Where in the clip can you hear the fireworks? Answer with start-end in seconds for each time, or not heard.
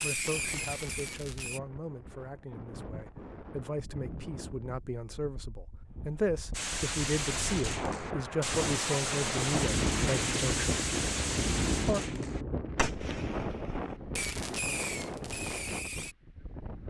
0.0-1.6, 6.5-16.1.